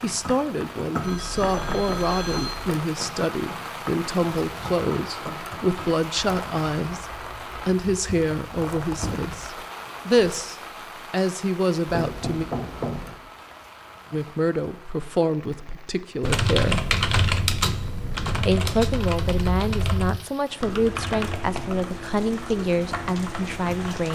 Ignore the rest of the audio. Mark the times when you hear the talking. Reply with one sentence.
You can hear the talking from 0.0 to 12.4 s, from 14.1 to 16.8 s and from 18.4 to 24.1 s.